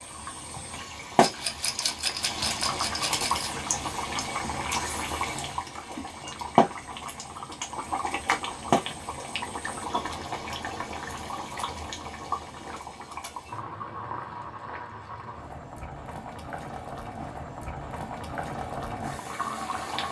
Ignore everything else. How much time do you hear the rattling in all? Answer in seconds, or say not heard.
2 s.